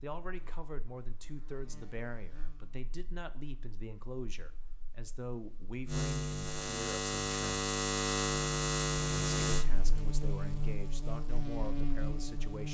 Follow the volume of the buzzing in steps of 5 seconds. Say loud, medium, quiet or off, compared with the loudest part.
quiet, loud, medium.